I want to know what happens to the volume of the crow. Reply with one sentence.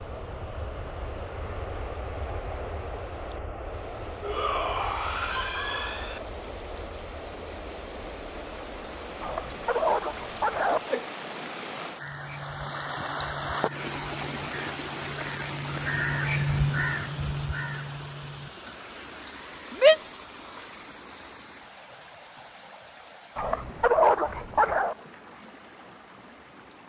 The loudness of the crow goes up, then down.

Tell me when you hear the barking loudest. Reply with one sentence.
The volume of the barking peaks at 24 seconds.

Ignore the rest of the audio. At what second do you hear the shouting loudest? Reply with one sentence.
The volume of the shouting peaks at 20 seconds.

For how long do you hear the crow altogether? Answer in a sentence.
You can hear the crow for 7 seconds altogether.